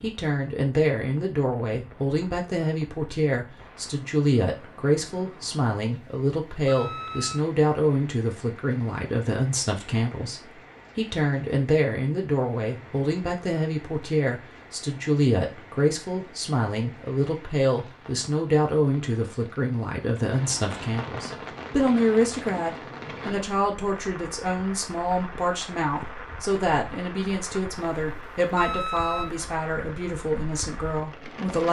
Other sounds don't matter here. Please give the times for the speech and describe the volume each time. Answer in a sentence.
You can hear the speech from 0.0 to 31.6 s, at a steady volume.